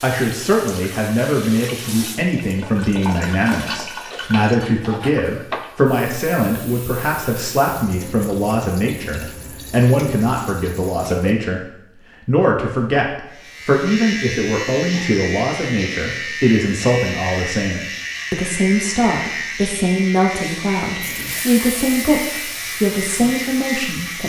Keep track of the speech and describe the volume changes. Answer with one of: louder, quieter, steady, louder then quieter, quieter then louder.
steady.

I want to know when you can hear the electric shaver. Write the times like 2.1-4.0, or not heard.
13.3-24.2.